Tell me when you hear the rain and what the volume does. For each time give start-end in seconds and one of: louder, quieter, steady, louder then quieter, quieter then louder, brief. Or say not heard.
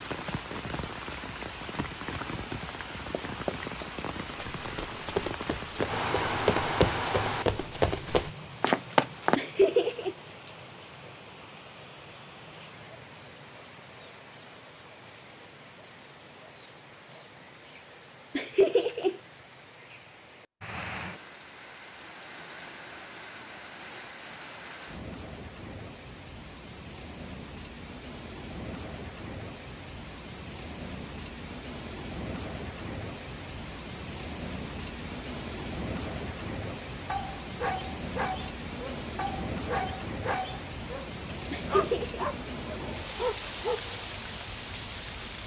0.0-45.4 quieter then louder.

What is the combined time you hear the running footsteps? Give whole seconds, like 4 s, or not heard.
6 s.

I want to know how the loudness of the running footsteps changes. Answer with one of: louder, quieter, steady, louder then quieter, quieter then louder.
louder.